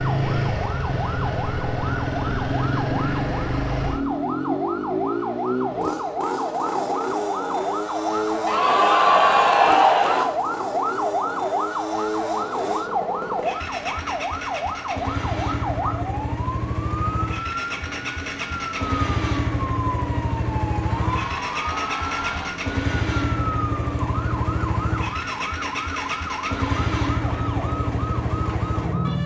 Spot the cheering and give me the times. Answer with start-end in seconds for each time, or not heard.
8.4-10.2, 20.9-22.6.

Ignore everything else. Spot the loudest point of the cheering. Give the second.
9 s.